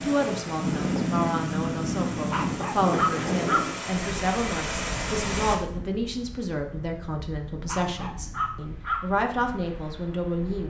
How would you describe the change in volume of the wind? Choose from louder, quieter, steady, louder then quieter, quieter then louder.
quieter.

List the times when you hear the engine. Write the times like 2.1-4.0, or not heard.
0.0-5.6.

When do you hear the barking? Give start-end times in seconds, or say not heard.
2.3-3.6, 7.7-9.0.